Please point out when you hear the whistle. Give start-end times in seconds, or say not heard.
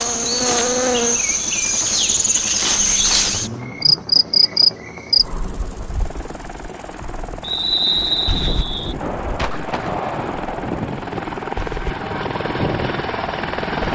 7.4-8.9.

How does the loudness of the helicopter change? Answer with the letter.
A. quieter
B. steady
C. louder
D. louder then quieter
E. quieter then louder
C.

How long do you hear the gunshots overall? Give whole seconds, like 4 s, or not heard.
2 s.